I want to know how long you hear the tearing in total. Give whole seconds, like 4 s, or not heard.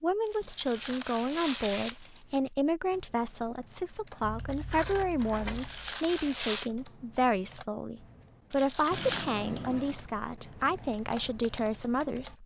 4 s.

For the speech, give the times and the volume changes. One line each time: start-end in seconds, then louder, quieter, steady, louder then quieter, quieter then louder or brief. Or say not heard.
0.0-12.4 steady.